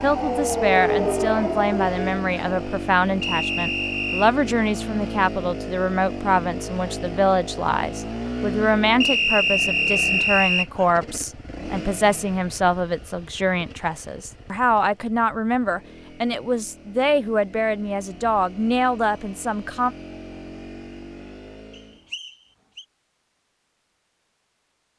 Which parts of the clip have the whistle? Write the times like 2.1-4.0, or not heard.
3.2-4.3, 9.0-10.7, 21.7-22.9.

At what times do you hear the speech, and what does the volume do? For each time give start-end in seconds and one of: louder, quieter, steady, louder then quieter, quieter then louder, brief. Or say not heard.
0.0-19.9 steady.